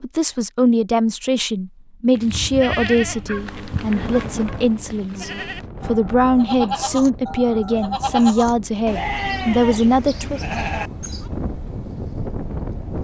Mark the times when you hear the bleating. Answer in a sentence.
The bleating can be heard from 2.1 to 11.2 s.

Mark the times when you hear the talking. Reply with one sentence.
You can hear the talking from 0.0 to 10.4 s.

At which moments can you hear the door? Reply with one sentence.
You can't hear the door here.